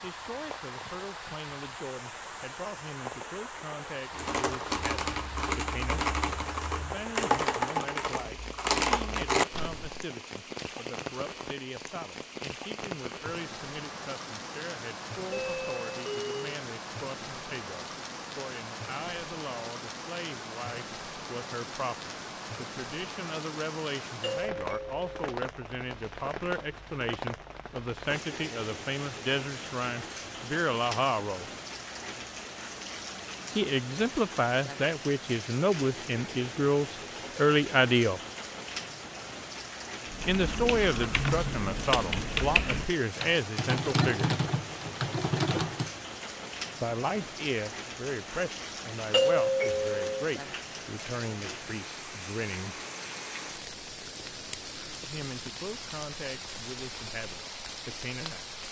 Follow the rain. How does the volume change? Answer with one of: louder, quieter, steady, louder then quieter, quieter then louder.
steady.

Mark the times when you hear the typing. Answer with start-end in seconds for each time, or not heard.
4.1-10.1, 40.0-46.0.